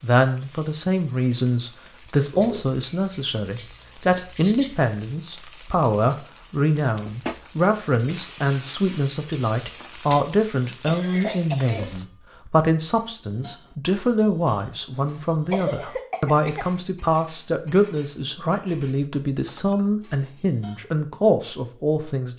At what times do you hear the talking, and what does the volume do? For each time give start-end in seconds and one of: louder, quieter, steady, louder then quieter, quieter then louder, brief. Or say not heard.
0.0-22.3 steady.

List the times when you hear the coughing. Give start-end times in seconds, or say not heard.
2.3-4.8, 10.8-11.9, 14.9-16.8.